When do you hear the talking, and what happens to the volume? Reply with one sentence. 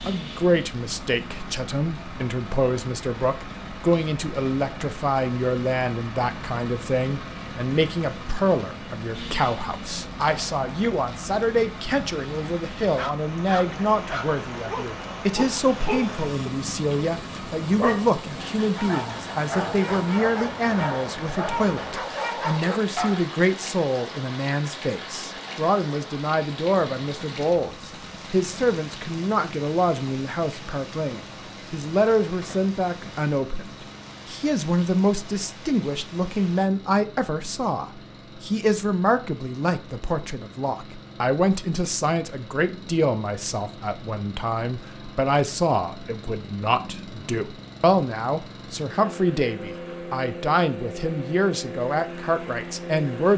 You can hear the talking from 0.1 to 53.3 s, at a steady volume.